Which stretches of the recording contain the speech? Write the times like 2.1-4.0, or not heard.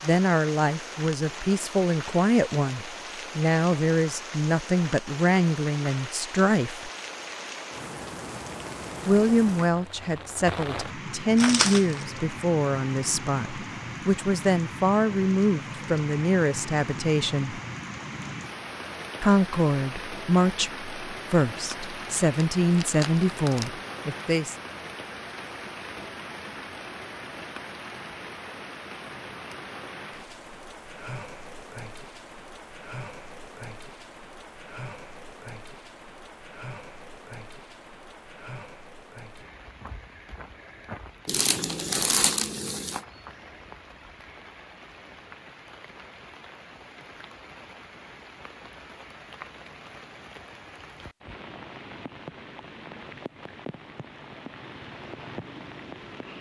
0.0-6.9, 9.1-17.6, 19.2-24.6.